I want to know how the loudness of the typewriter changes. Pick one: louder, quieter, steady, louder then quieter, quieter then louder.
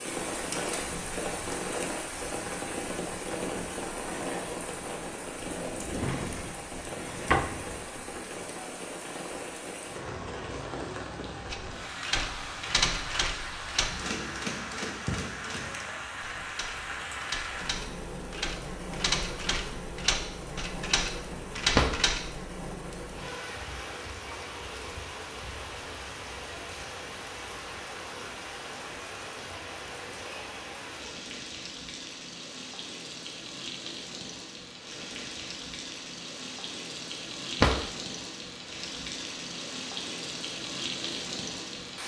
quieter then louder.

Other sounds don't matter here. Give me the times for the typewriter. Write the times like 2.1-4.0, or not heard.
11.5-22.4.